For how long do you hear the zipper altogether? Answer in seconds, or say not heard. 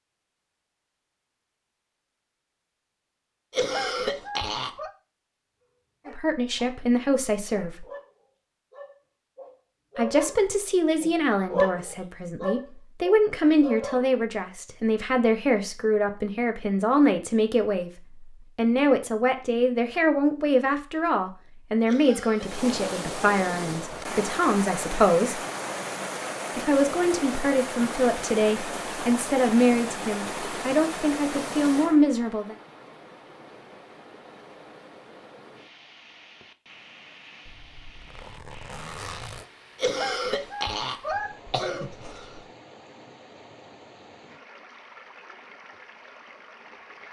2 s.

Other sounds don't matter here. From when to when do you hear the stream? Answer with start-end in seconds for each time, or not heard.
22.4-47.0.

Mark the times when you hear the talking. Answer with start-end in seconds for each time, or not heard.
6.0-7.8, 9.9-17.9, 18.6-25.4, 26.6-32.5.